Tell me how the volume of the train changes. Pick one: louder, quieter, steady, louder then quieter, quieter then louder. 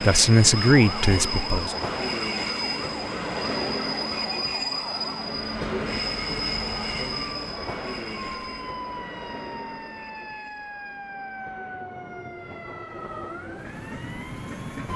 quieter.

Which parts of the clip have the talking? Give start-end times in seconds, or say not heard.
0.0-1.8.